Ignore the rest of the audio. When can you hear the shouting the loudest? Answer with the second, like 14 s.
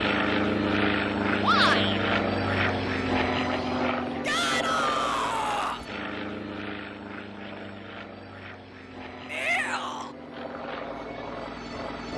2 s.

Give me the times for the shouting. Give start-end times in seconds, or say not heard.
1.4-2.0, 4.2-5.8, 9.3-10.2.